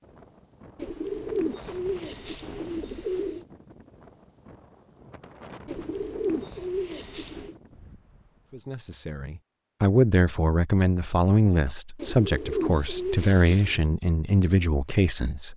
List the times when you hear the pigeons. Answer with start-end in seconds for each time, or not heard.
0.8-3.5, 5.7-7.5, 11.9-13.8.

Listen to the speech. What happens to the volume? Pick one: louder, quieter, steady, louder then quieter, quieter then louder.
steady.